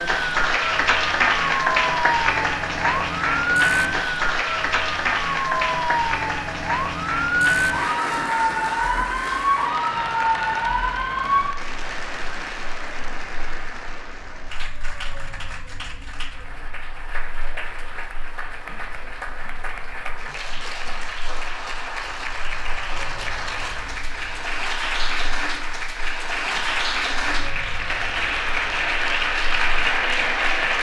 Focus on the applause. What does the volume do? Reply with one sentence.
The loudness of the applause goes down, then up.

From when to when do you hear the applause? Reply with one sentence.
You can hear the applause from 0.0 to 30.7 s.